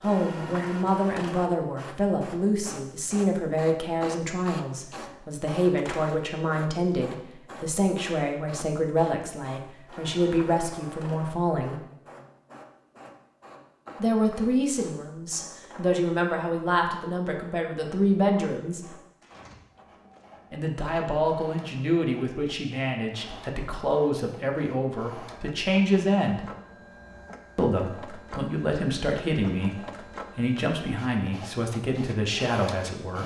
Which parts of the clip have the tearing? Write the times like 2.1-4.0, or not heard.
19.2-20.2.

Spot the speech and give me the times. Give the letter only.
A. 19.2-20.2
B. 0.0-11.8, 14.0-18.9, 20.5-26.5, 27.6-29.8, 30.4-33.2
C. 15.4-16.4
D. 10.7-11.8
B.